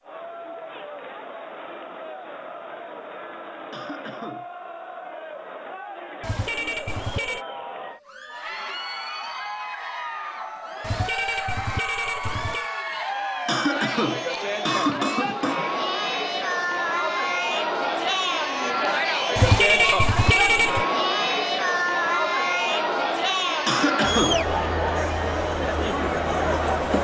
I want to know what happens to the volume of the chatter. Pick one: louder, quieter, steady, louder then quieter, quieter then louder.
louder.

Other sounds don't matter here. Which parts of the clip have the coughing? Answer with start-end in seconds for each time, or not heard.
3.7-4.5, 13.4-15.7, 23.6-24.4.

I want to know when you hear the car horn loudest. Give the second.
20 s.